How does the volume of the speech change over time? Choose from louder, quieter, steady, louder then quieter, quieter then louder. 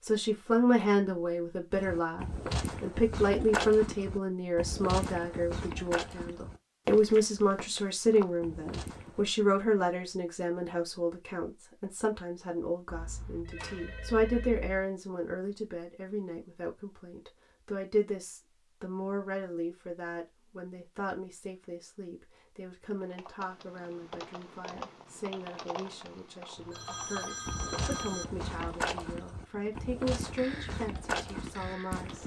quieter.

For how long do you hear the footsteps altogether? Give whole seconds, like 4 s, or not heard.
12 s.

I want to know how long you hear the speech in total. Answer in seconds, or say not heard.
32 s.